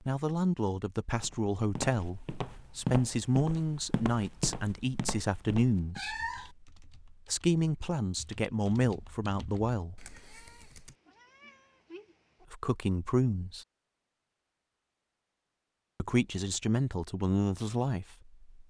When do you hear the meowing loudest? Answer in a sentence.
The volume of the meowing peaks at 6 seconds.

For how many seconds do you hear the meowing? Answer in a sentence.
You can hear the meowing for 3 seconds altogether.